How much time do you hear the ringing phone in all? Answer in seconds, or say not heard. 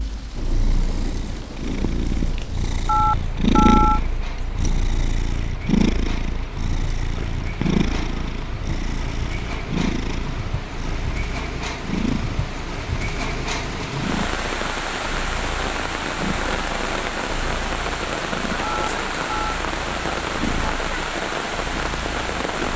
2 s.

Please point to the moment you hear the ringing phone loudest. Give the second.
4 s.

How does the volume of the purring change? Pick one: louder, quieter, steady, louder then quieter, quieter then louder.
quieter.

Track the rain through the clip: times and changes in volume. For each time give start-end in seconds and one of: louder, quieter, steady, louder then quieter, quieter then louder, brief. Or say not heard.
0.0-22.7 louder.